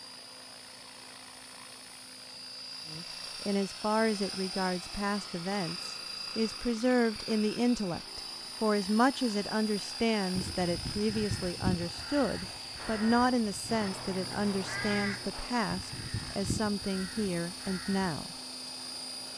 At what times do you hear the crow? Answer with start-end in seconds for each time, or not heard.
10.3-18.1.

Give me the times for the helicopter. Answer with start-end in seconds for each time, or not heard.
0.0-19.3.